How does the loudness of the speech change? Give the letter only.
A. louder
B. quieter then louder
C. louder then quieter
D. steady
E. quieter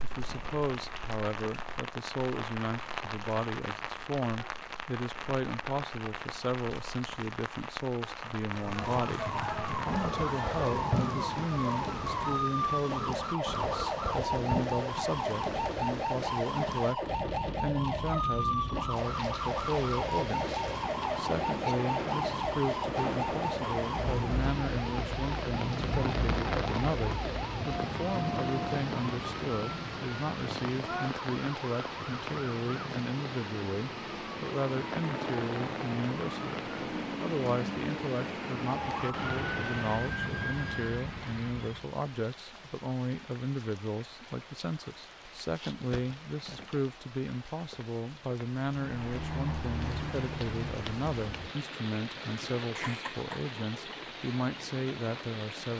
D.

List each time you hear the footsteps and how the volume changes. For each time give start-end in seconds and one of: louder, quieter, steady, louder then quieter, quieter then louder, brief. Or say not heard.
not heard.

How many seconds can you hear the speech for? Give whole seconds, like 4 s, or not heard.
56 s.